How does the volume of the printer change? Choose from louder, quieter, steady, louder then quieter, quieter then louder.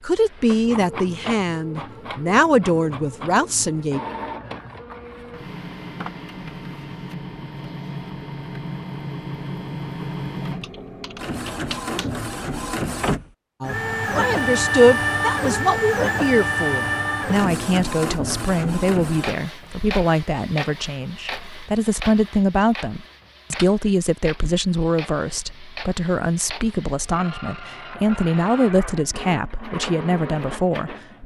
louder then quieter.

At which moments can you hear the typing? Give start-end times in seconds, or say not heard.
10.6-12.1.